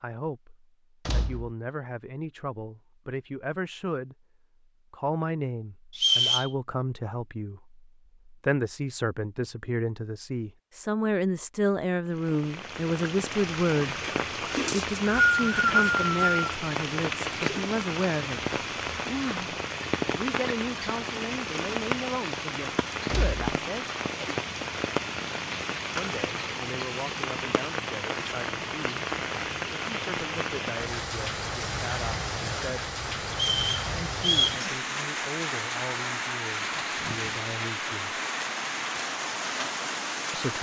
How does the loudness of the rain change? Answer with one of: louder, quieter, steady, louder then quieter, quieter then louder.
steady.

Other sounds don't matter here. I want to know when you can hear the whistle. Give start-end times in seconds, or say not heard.
6.0-6.5, 14.7-16.6, 33.4-34.6.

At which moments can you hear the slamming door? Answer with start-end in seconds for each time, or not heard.
1.1-1.5, 23.1-23.5.